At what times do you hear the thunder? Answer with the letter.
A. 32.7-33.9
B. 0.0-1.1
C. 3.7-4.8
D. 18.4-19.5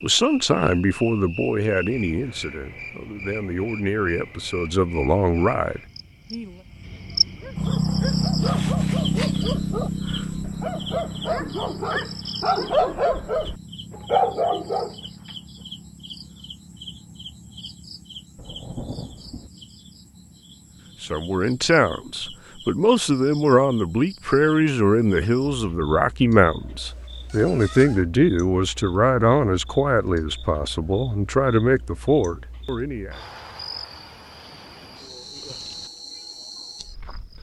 D.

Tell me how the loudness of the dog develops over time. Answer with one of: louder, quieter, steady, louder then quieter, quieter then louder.
louder.